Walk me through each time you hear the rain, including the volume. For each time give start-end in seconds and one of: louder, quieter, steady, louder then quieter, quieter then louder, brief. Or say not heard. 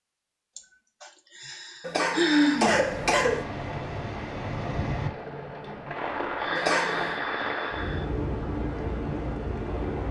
2.6-10.0 steady.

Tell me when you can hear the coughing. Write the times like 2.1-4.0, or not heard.
1.8-3.5, 6.5-7.2.